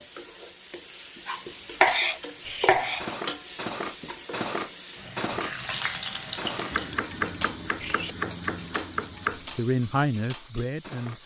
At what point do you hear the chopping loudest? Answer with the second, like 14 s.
2 s.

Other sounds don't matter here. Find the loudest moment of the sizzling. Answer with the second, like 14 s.
6 s.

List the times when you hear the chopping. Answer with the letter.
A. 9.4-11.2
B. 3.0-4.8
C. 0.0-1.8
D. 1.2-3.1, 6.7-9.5
D.